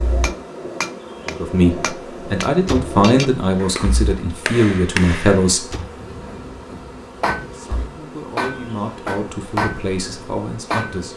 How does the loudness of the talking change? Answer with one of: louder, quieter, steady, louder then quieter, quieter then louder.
quieter.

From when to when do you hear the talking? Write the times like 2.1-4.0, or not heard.
1.2-5.8, 7.5-11.1.